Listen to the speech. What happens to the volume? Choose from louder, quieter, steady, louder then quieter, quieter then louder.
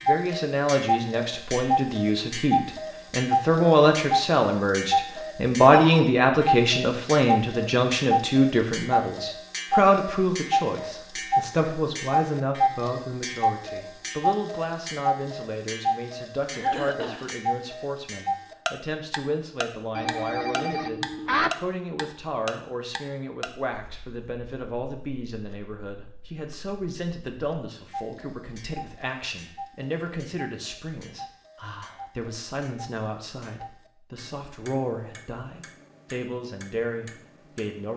quieter.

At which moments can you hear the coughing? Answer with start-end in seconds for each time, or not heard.
16.5-17.4.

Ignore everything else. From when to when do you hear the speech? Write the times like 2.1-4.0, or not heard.
0.1-37.9.